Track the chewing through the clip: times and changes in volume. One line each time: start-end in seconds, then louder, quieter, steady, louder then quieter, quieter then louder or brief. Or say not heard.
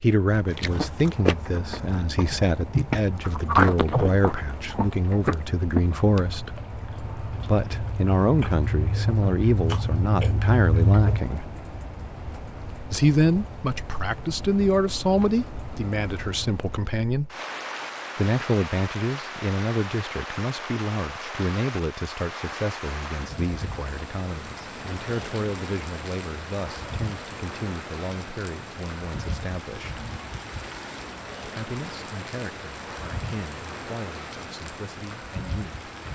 0.6-11.2 quieter then louder.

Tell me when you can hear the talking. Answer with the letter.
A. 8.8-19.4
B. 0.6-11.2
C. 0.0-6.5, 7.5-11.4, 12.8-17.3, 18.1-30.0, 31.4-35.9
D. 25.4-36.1
C.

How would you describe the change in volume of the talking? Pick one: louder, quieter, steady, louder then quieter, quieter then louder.
quieter.